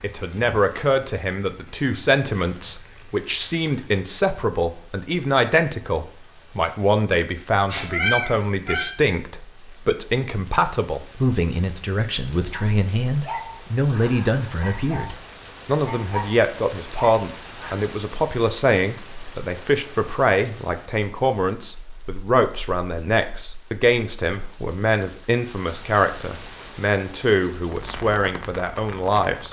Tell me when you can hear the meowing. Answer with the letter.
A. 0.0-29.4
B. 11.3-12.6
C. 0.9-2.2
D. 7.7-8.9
D.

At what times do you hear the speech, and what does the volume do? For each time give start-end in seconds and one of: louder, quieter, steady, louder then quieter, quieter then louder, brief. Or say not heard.
0.0-29.4 steady.